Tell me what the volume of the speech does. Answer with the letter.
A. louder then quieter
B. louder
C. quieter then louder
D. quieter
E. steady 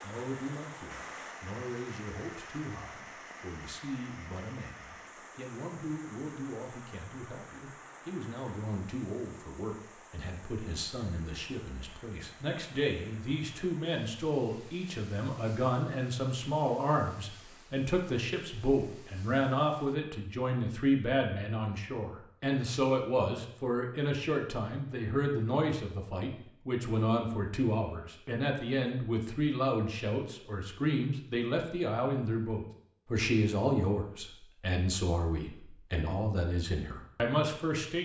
B.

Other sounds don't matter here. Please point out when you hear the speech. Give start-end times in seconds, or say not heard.
0.0-37.9.